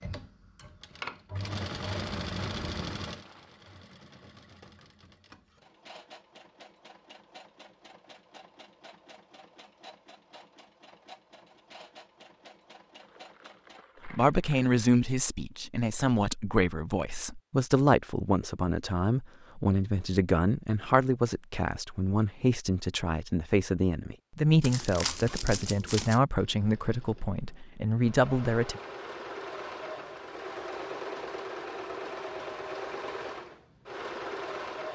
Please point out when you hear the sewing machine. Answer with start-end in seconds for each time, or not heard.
0.0-13.8, 26.4-34.8.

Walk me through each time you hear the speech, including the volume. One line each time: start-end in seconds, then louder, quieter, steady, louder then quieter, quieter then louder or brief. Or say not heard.
14.1-28.8 steady.